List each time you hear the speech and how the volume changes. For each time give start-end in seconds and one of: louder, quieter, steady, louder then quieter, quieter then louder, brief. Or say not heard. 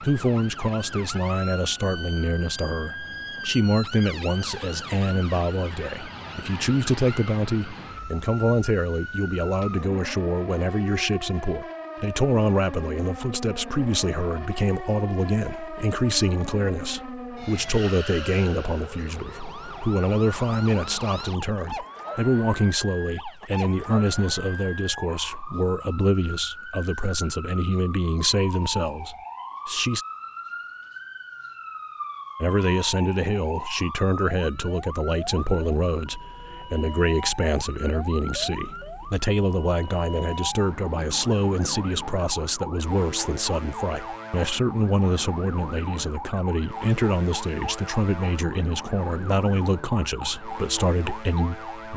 0.0-30.1 steady
32.4-51.9 steady.